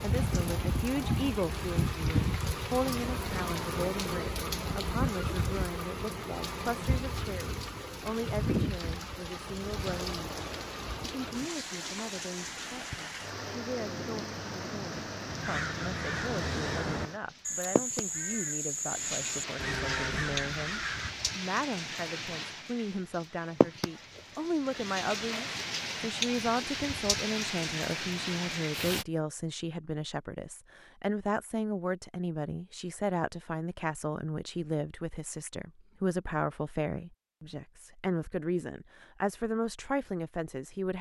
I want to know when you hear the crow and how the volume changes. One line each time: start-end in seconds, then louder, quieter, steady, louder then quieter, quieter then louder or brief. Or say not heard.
15.2-21.1 steady.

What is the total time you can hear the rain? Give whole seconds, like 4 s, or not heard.
29 s.